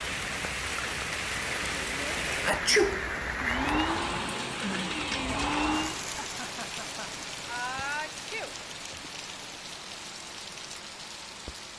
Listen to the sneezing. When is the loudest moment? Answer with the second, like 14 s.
3 s.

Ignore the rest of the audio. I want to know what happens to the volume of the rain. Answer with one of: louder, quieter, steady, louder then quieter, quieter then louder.
quieter.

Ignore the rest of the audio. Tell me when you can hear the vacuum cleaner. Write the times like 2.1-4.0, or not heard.
3.4-6.0.